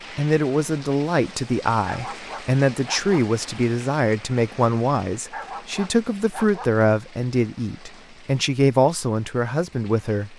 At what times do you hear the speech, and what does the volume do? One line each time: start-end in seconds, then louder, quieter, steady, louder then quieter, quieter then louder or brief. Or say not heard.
0.1-10.3 steady.